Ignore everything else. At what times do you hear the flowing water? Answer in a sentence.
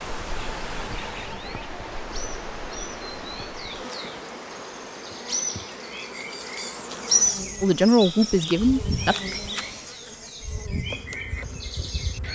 The flowing water can be heard from 0.0 to 10.1 s.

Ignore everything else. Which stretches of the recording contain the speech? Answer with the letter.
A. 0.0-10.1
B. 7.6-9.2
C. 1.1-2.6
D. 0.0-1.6
B.